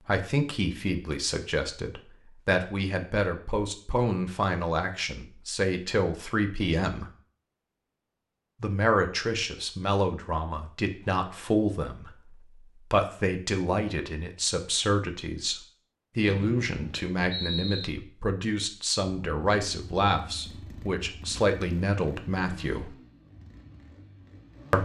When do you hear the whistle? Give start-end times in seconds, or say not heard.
16.4-17.9.